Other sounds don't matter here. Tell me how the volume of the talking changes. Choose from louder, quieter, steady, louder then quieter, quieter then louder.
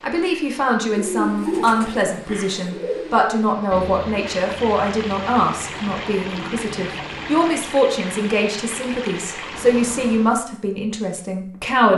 steady.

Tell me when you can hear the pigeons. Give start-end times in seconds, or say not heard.
0.8-7.5.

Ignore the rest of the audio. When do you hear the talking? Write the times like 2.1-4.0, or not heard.
0.0-11.9.